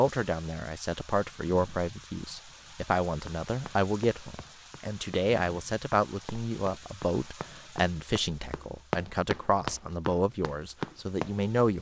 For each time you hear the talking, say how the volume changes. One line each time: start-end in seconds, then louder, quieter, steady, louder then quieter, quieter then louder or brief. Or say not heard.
0.0-11.7 steady.